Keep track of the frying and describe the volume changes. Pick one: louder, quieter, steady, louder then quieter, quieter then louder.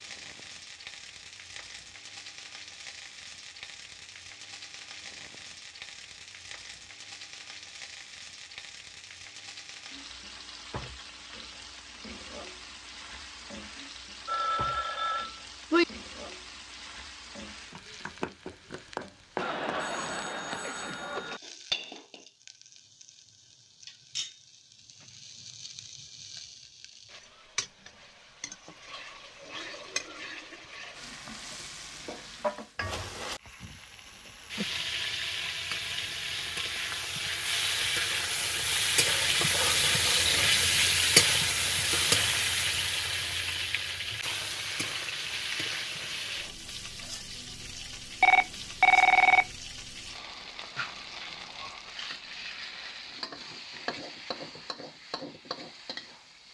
louder then quieter.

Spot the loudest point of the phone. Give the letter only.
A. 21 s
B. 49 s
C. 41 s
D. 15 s
B.